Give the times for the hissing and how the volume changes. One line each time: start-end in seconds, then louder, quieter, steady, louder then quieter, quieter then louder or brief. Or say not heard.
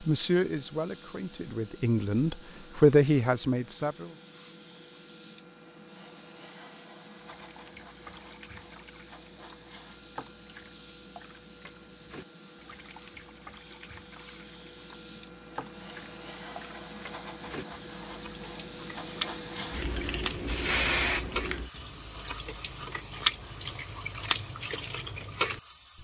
0.0-26.0 louder.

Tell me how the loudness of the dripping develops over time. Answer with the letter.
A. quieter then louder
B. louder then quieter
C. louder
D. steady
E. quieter
C.